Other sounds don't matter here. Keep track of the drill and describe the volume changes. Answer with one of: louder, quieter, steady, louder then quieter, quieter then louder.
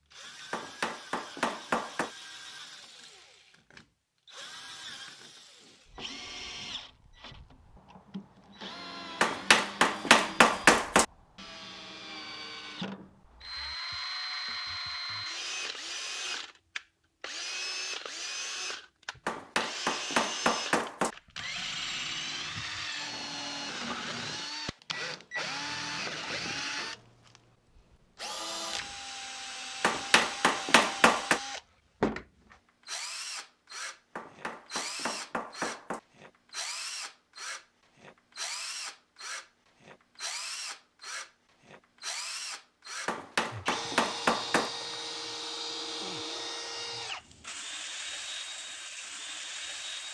louder.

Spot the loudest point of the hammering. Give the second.
11 s.